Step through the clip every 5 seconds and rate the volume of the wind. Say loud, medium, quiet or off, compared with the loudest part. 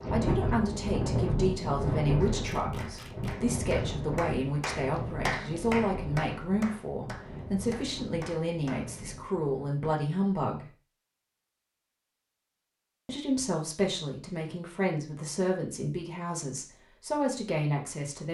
loud, medium, off, off.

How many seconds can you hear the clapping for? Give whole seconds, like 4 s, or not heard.
7 s.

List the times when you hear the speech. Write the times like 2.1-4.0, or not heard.
0.1-10.7, 13.1-18.2.